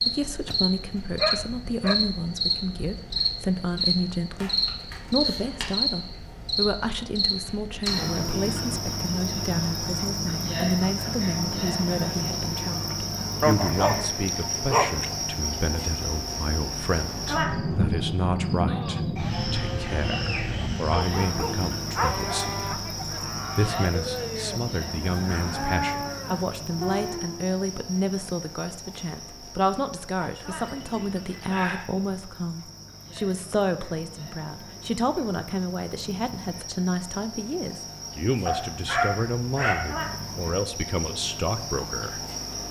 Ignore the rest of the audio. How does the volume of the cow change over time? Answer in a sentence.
The loudness of the cow goes up.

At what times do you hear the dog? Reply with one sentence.
You can hear the dog from 0.5 to 1.9 s, from 13.4 to 15.1 s, from 20.9 to 22.8 s, from 30.2 to 31.9 s and from 38.5 to 40.0 s.